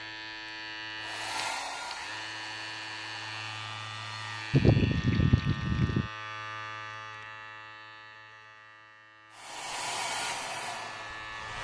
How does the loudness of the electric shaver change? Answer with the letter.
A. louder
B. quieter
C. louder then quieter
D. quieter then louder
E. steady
B.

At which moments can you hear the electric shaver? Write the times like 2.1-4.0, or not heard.
0.0-11.5.